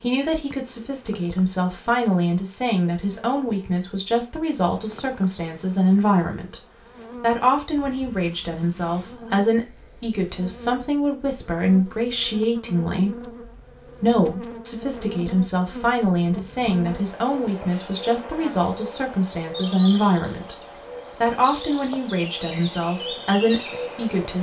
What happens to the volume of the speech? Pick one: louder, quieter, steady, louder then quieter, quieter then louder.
steady.